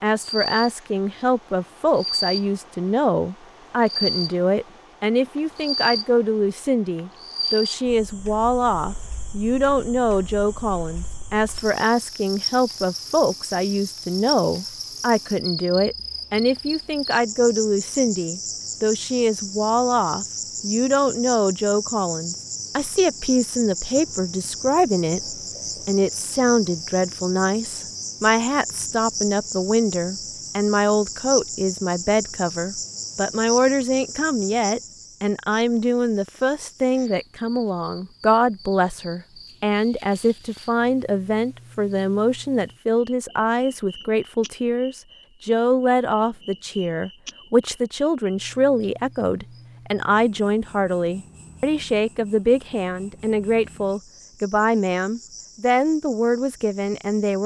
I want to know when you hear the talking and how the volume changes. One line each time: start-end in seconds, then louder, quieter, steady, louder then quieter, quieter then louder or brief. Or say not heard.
0.0-57.4 steady.